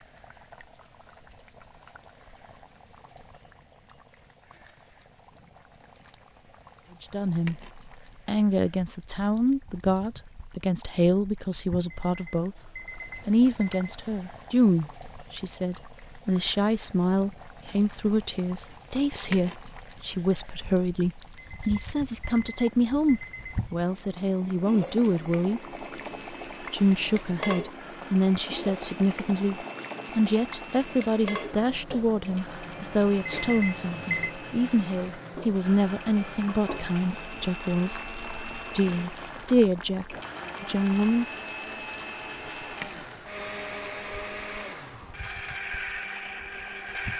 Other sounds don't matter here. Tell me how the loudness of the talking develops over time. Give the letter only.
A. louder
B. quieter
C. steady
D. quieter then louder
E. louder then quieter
C.